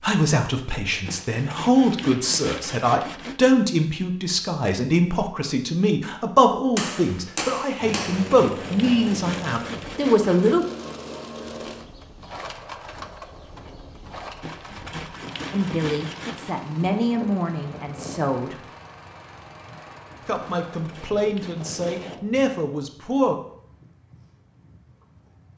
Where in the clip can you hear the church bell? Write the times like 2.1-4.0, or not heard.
not heard.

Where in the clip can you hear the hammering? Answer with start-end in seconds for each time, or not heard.
6.8-8.4.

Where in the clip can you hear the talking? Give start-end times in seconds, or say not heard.
0.0-10.7, 15.5-18.6, 20.2-23.4.